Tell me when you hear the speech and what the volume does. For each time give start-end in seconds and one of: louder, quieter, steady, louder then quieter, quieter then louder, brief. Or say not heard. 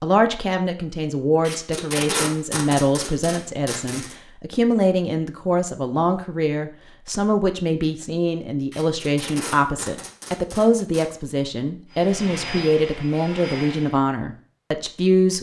0.0-15.3 steady.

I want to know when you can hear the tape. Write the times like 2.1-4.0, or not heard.
1.4-4.2, 8.7-11.1.